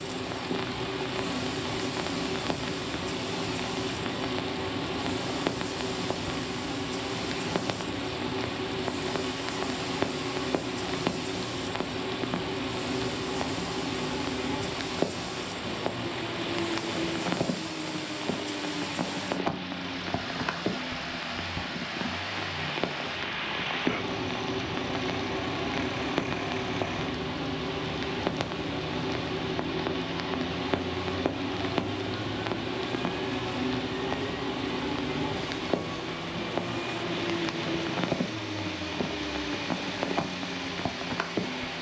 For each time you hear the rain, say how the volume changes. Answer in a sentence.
You can hear the rain from 0.0 to 41.7 s, at a steady volume.